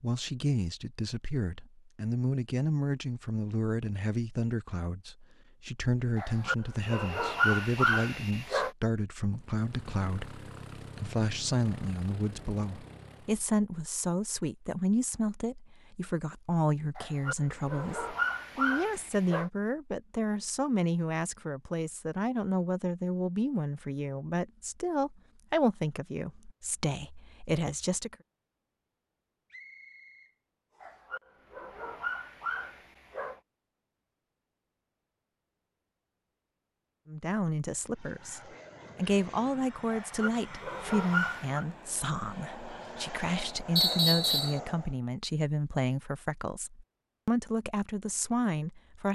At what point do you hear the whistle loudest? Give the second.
44 s.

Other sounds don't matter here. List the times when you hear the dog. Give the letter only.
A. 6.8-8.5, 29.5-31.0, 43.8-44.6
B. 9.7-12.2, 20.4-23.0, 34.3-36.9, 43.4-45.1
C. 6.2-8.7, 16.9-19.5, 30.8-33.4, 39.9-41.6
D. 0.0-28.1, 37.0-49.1
C.